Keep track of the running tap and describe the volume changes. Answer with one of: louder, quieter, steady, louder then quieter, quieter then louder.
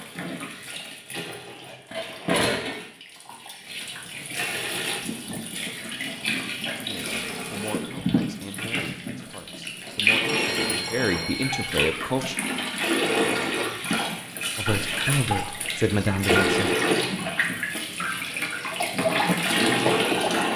louder.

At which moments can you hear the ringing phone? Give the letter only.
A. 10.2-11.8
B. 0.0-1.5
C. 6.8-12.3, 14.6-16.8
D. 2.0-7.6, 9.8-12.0
A.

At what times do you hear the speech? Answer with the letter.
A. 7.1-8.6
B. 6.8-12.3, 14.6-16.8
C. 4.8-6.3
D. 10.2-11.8
B.